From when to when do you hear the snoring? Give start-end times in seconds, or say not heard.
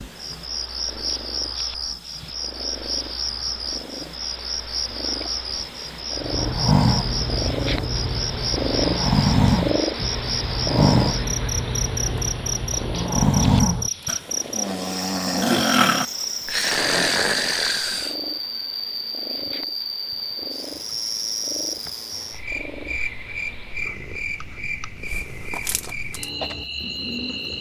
6.2-18.1.